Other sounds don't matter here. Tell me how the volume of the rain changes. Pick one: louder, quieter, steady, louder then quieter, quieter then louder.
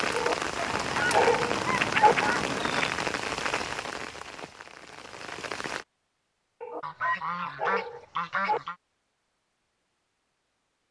quieter.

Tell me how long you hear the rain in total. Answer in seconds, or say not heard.
6 s.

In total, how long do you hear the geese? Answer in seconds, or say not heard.
4 s.